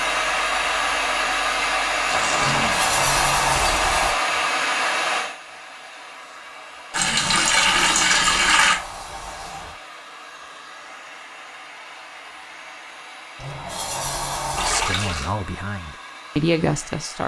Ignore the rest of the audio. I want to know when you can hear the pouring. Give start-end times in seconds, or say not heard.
2.0-2.7, 6.9-8.8, 14.6-15.3.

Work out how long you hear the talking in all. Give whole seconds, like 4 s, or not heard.
3 s.